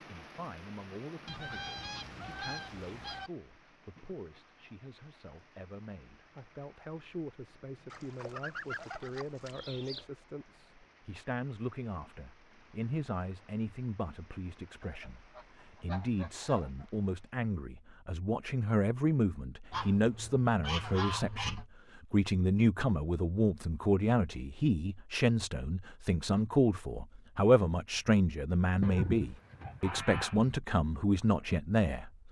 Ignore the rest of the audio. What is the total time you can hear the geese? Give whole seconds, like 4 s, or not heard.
10 s.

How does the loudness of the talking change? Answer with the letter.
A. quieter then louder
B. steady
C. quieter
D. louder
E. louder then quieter
D.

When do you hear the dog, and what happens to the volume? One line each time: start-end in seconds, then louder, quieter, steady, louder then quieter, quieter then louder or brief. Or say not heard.
not heard.